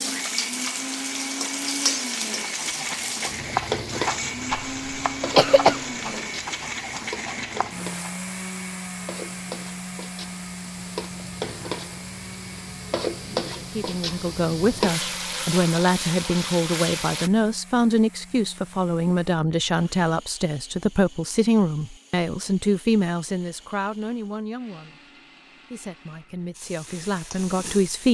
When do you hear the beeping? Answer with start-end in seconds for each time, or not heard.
not heard.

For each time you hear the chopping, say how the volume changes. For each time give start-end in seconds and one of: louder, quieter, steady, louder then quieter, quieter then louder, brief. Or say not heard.
2.4-8.1 quieter.